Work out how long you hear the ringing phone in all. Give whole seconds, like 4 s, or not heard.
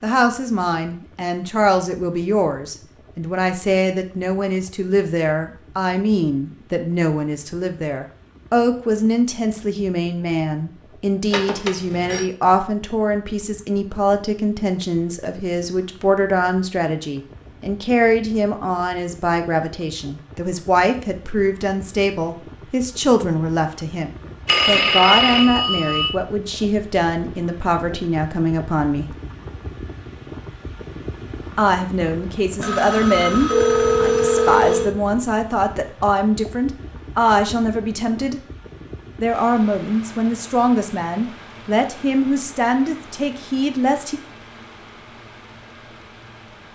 5 s.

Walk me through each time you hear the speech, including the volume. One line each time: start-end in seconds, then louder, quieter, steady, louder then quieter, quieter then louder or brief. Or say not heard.
0.0-29.1 steady
31.6-38.4 steady
39.1-44.2 steady.